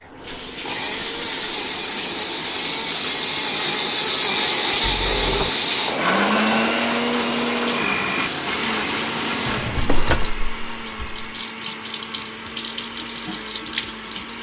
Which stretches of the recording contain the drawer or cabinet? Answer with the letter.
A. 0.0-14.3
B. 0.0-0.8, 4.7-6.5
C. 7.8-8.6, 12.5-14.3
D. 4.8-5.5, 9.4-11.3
D.